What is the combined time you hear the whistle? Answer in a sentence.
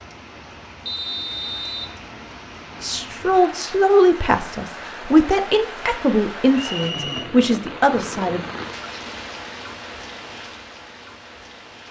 The whistle can be heard for 2 seconds in total.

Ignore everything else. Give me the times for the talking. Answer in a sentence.
You can hear the talking from 2.8 to 8.4 s.